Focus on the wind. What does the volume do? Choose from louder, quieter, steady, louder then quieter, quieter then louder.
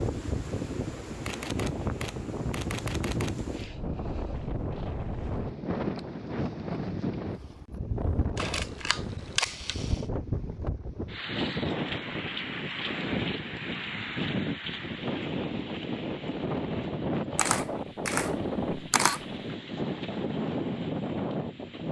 steady.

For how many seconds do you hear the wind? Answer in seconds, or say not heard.
22 s.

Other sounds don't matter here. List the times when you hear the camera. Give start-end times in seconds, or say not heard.
1.2-3.5, 8.3-10.0, 17.4-19.2.